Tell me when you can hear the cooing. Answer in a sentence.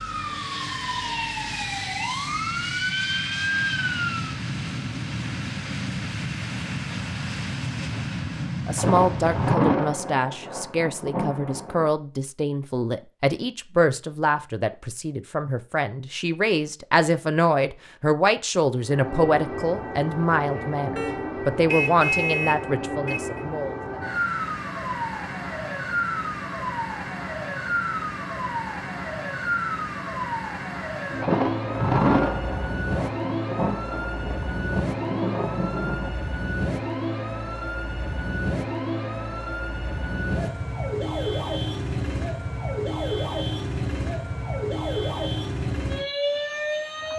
You can't hear the cooing here.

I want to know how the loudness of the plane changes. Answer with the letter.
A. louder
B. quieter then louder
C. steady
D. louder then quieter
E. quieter
C.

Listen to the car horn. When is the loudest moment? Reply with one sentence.
The volume of the car horn peaks at 22 seconds.